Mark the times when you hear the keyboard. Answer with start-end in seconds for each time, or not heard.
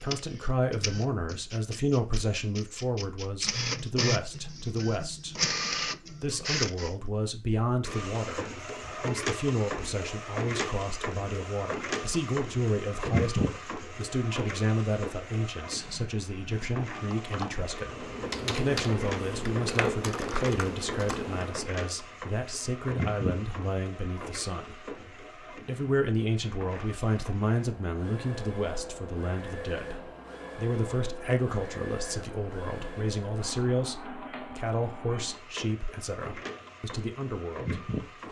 16.4-21.6.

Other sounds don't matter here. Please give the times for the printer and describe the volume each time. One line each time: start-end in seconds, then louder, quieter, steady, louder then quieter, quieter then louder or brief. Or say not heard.
0.0-38.2 quieter.